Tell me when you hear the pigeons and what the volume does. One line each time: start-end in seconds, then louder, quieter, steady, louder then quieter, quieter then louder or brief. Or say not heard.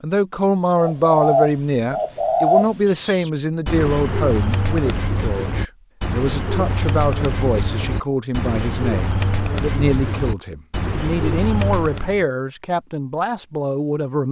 0.8-12.2 quieter.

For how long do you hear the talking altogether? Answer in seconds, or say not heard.
14 s.